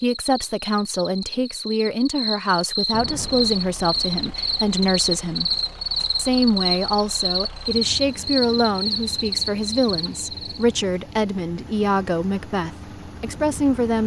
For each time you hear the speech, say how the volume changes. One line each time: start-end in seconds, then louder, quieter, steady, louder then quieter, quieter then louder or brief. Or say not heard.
0.0-5.5 steady
6.2-14.0 steady.